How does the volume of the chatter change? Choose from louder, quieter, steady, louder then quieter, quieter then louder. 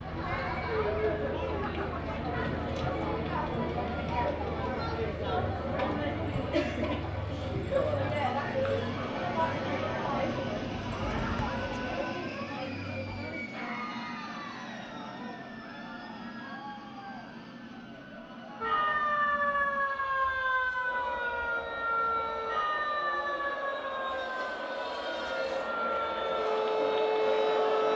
quieter then louder.